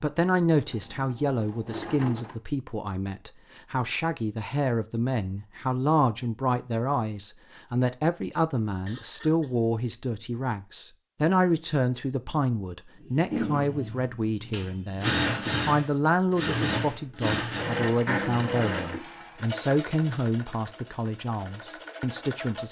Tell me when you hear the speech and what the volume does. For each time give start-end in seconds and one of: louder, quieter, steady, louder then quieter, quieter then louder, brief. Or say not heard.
0.0-22.6 steady.